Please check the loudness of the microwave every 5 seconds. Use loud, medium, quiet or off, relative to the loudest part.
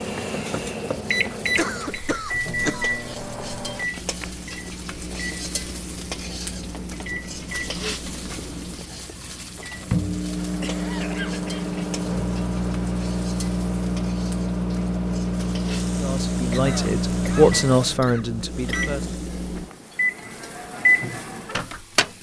medium, medium, loud, loud, loud.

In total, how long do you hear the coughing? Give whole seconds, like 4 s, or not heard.
5 s.